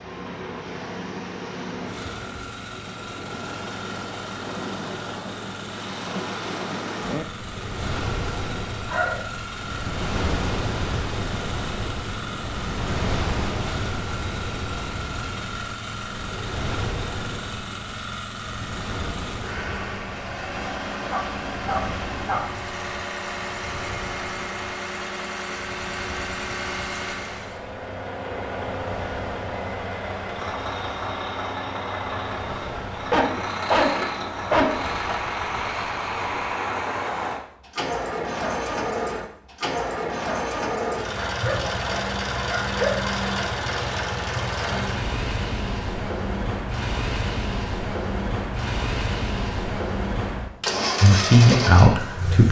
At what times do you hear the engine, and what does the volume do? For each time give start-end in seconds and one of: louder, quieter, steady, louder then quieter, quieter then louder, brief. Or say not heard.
0.0-52.4 louder.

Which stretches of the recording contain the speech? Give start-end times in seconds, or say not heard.
51.0-52.4.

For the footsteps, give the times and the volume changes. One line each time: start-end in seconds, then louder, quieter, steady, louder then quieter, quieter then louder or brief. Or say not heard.
not heard.